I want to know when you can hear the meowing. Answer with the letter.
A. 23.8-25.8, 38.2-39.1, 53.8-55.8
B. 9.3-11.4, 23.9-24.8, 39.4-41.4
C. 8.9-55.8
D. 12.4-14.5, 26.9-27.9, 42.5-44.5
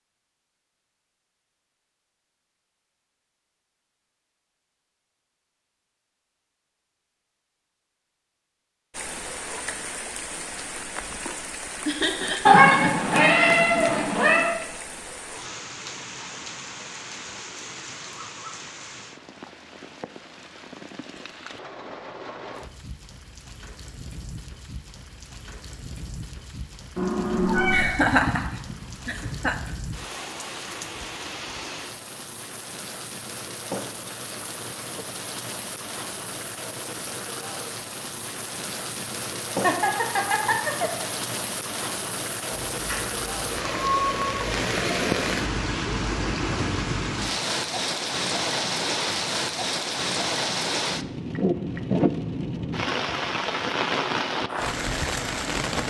D.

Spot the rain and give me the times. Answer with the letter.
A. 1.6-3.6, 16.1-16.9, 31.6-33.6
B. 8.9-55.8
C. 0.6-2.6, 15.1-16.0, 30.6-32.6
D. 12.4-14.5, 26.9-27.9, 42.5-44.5
B.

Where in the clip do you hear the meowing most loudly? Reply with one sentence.
The loudest moment of the meowing is at 13 seconds.